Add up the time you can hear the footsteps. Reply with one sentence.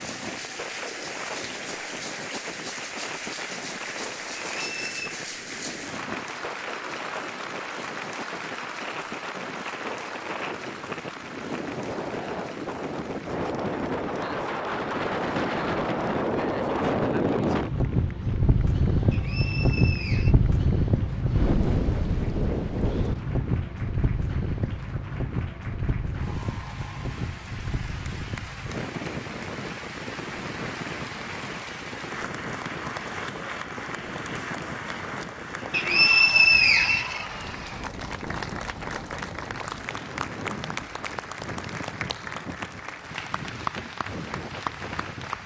You can't hear the footsteps here.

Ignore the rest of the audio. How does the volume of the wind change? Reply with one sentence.
The volume of the wind goes up, then down.